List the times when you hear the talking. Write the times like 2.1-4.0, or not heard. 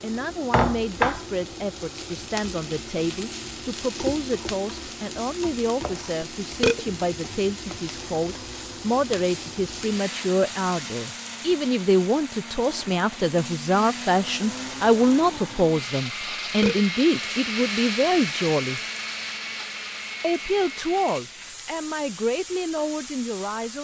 0.0-18.8, 20.2-23.7.